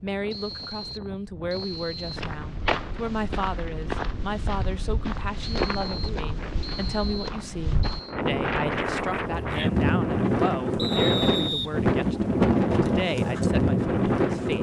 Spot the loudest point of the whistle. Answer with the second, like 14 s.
11 s.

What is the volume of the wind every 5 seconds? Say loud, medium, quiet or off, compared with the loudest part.
quiet, medium, loud.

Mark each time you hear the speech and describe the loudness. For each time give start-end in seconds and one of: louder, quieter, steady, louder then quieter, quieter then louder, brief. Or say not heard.
0.0-14.5 steady.